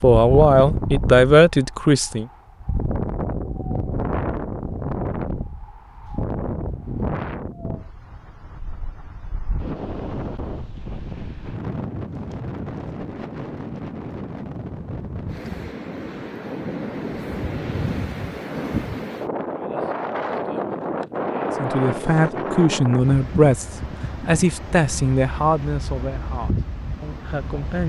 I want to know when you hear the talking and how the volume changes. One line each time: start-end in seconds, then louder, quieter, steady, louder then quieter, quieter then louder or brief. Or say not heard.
0.0-2.2 brief
21.6-27.8 quieter.